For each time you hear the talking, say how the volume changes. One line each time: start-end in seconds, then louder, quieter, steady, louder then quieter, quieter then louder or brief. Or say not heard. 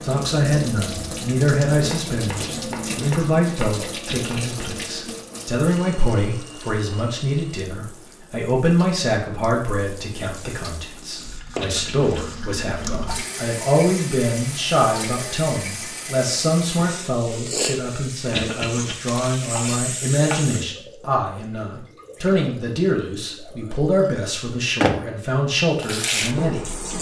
0.0-26.7 steady.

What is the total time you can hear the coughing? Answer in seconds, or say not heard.
2 s.